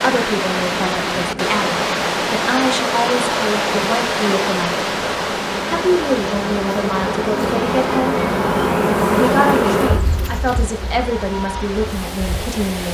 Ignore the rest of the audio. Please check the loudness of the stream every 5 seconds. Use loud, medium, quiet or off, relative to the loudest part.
loud, medium, medium.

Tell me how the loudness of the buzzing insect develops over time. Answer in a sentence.
The loudness of the buzzing insect goes up, then down.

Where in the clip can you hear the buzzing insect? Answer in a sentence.
You can hear the buzzing insect from 0.0 to 12.6 s.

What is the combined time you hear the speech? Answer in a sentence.
The speech can be heard for 11 seconds in total.